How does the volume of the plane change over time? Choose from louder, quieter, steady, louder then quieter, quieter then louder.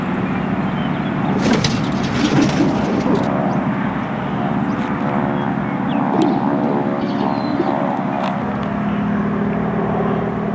steady.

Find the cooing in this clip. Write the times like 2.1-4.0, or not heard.
1.3-3.3, 6.1-7.8.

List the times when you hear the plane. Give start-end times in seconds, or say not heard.
0.0-10.5.